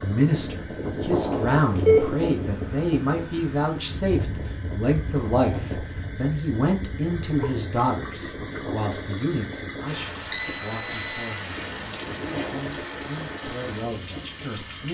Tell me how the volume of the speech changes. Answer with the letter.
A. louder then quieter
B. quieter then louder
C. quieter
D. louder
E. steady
C.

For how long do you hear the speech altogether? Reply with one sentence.
You can hear the speech for 15 seconds altogether.